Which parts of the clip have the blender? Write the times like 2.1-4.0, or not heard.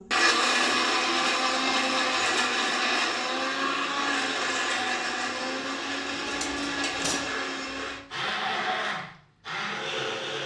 0.0-10.4.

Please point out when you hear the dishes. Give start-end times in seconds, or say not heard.
6.2-7.3.